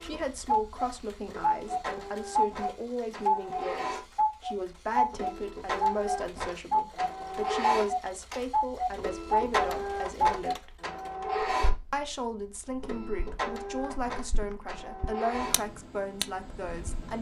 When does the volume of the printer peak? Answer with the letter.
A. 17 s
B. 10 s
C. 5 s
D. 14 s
B.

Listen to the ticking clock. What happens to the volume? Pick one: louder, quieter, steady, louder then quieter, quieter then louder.
quieter.